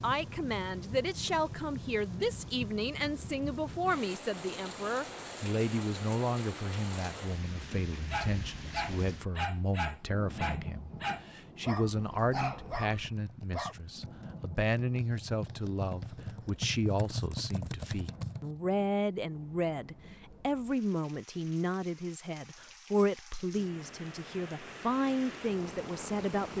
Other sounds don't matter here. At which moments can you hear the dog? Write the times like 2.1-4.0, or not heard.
8.1-13.8.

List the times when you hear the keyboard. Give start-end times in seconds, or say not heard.
12.0-18.6.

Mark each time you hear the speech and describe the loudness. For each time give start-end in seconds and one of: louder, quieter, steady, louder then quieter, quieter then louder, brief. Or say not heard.
0.0-26.5 steady.